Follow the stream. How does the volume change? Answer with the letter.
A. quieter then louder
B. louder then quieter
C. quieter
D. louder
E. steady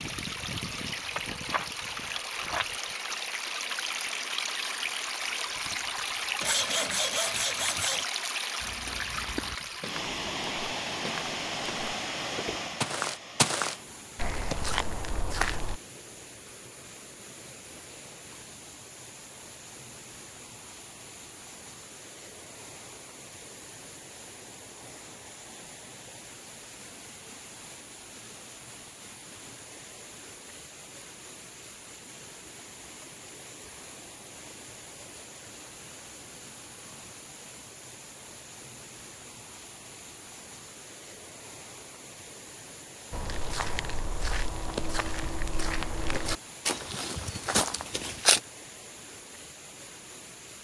C.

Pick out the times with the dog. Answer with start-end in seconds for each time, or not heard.
not heard.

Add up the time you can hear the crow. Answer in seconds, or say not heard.
not heard.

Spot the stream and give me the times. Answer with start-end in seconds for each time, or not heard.
0.0-50.6.